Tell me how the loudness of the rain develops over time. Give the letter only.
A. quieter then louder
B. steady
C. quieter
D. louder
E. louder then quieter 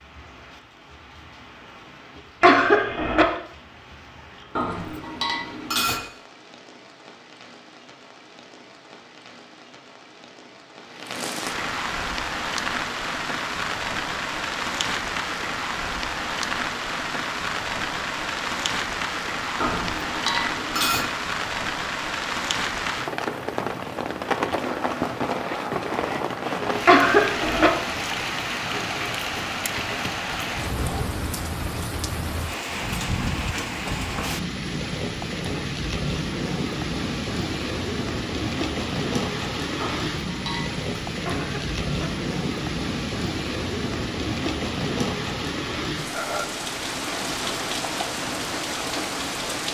D.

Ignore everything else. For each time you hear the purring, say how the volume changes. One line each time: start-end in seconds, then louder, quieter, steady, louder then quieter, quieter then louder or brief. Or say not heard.
not heard.